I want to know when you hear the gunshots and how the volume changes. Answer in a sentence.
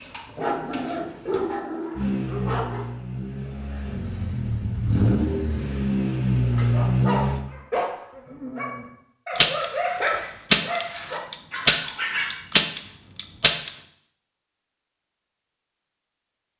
The gunshots can be heard from 9.3 to 13.7 s, getting louder then quieter.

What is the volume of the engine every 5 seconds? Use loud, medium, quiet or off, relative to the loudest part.
medium, loud, off, off.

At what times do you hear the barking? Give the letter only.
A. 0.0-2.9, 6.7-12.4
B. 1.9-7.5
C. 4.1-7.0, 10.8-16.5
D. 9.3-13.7
A.